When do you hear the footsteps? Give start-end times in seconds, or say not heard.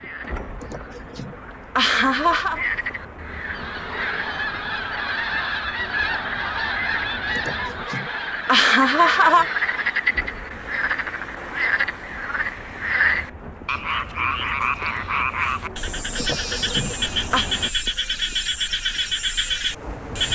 not heard.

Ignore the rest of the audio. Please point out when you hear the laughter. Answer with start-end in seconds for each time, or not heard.
0.6-2.6, 7.3-9.4, 16.1-17.4.